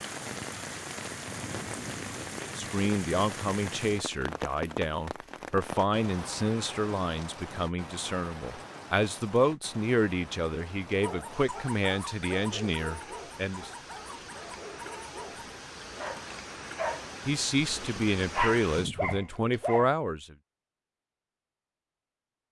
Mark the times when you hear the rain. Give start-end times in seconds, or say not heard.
0.0-18.9.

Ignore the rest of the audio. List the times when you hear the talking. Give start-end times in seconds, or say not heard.
2.4-13.7, 17.2-20.4.